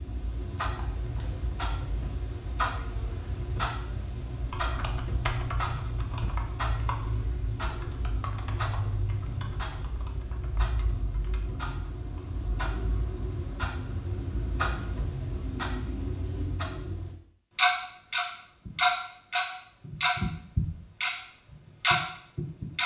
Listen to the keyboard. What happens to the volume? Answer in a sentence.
The loudness of the keyboard goes down.